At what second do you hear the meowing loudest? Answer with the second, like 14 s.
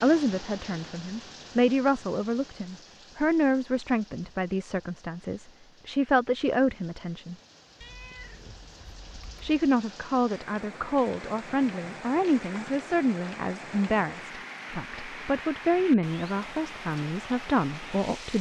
8 s.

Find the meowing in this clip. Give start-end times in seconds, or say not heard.
7.8-9.4.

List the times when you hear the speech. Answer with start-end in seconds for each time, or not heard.
0.0-7.3, 9.4-18.3.